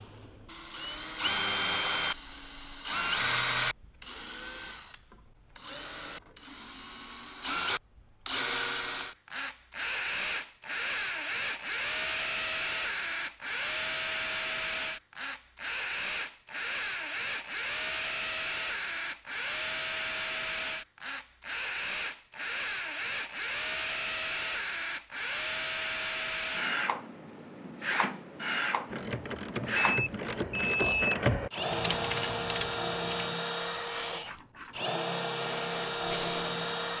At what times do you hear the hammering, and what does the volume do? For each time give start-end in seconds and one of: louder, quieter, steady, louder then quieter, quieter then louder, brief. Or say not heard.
not heard.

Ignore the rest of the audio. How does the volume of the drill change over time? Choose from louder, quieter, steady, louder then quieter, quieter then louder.
steady.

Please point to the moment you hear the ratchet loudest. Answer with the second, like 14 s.
31 s.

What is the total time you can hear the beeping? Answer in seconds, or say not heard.
2 s.